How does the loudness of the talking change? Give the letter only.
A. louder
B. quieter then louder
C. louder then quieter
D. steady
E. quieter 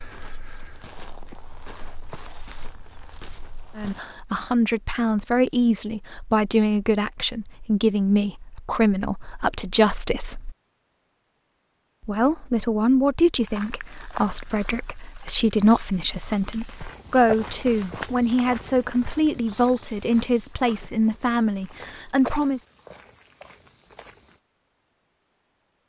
D.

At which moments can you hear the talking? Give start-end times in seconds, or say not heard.
3.8-10.6, 12.1-22.6.